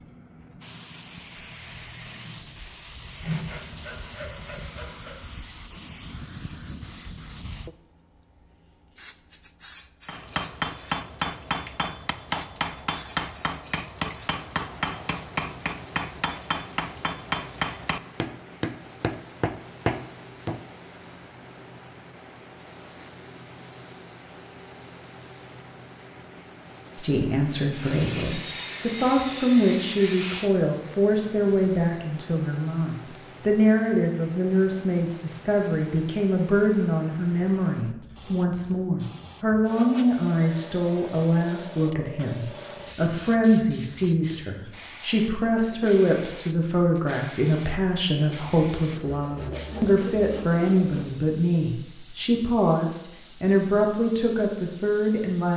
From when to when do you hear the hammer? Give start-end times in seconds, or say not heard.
10.1-20.6.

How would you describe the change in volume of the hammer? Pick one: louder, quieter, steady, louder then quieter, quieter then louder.
steady.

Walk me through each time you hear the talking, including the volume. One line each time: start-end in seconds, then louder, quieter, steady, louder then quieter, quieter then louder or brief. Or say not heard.
26.9-55.5 steady.